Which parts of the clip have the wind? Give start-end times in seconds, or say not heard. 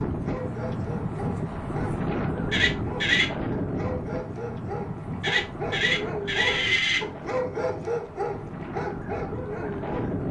0.0-10.2.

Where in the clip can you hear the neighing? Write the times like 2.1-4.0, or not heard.
2.5-3.3, 5.2-7.0.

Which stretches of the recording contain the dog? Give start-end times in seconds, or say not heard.
0.0-10.2.